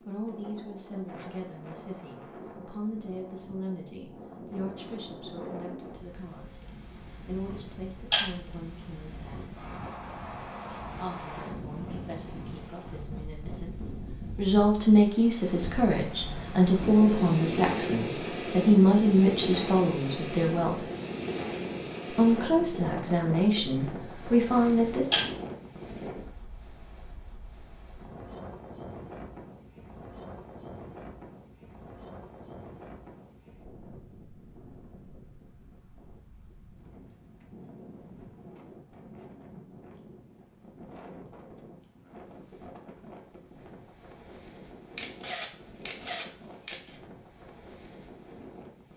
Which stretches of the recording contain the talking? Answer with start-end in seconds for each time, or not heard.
0.0-9.6, 10.9-20.9, 22.1-25.1.